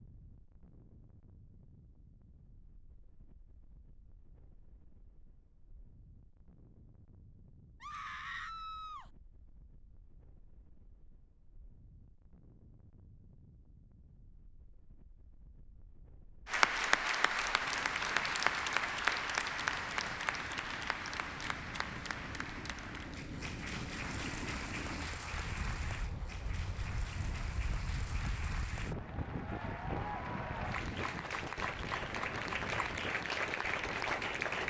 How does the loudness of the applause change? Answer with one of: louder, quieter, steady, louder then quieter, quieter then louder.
quieter then louder.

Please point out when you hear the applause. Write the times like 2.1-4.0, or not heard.
16.4-34.6.